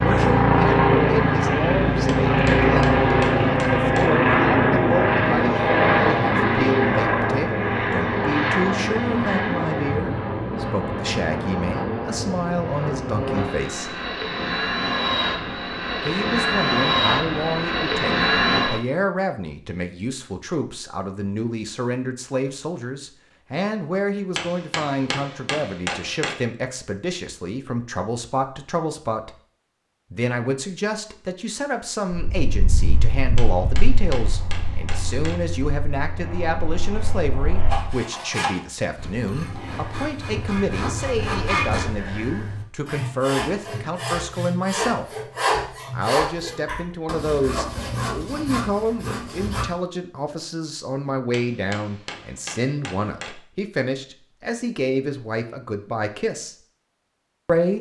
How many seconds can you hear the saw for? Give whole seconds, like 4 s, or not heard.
12 s.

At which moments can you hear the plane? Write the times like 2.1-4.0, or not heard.
0.0-18.8, 32.1-38.0.